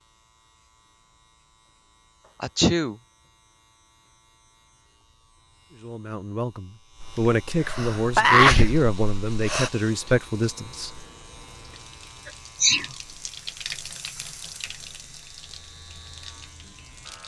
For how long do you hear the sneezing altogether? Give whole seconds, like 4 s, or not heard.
4 s.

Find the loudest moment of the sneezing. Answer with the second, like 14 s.
8 s.